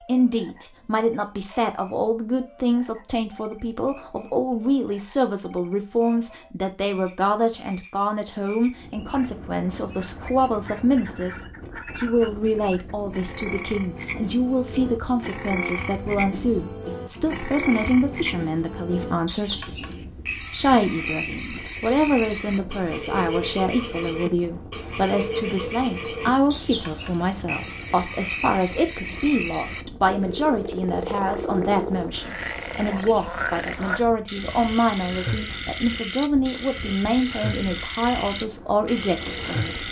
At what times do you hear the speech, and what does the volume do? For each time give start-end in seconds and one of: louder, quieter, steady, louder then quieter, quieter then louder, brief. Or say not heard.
0.1-39.8 steady.